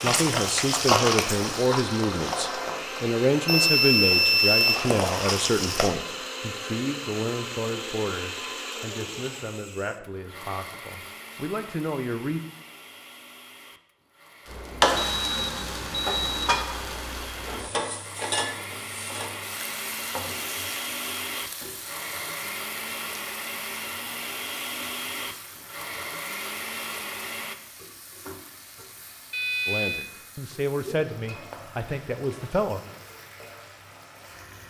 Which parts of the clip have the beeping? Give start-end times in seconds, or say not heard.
3.5-4.8, 14.9-16.6, 29.3-30.1.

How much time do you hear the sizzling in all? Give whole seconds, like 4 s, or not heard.
26 s.